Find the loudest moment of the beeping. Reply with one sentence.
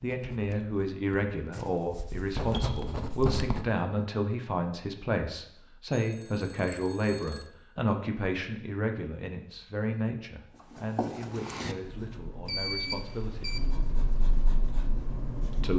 The volume of the beeping peaks at 13 seconds.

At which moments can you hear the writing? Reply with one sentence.
You can hear the writing from 0.0 to 3.7 s and from 10.5 to 15.7 s.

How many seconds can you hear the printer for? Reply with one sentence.
The printer can't be heard in this clip.